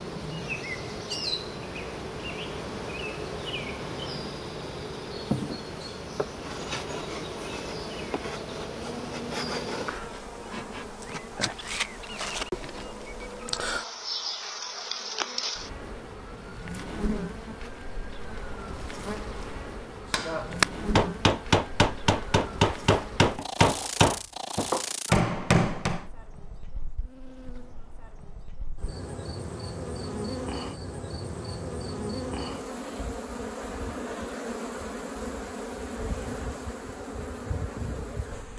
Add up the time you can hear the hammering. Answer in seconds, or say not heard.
6 s.